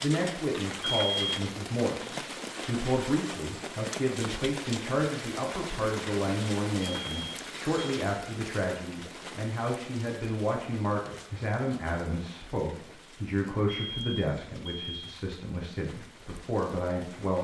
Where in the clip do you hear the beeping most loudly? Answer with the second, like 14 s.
1 s.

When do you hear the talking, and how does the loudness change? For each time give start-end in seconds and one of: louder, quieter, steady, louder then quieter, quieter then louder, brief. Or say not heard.
0.0-17.4 steady.